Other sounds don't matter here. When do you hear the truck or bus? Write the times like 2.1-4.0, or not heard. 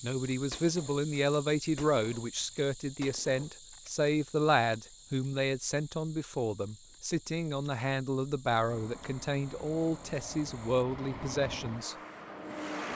8.7-12.9.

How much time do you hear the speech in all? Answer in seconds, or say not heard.
12 s.